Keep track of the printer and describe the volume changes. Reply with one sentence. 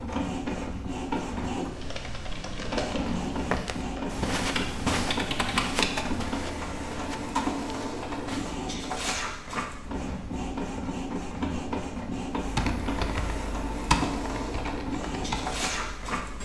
The volume of the printer stays about the same.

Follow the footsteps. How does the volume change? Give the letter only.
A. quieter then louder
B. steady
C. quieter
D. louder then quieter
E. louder
C.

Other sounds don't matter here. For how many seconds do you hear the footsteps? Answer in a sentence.
The footsteps can be heard for 5 seconds in total.